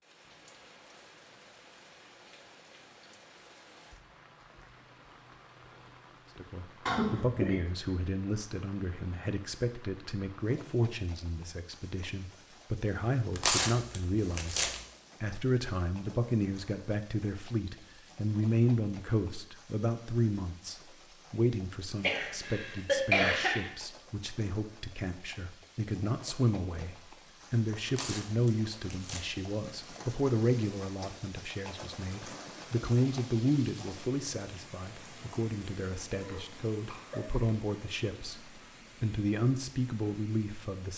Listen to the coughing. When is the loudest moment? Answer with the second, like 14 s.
23 s.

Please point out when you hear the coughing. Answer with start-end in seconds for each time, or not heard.
6.8-7.6, 22.0-23.7, 36.2-37.4.